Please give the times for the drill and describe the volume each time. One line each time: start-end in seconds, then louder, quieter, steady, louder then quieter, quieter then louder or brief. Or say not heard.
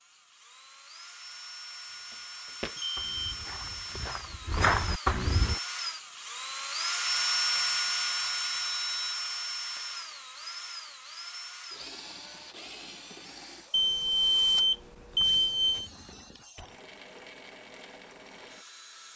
0.0-19.1 louder then quieter.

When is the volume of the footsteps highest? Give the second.
5 s.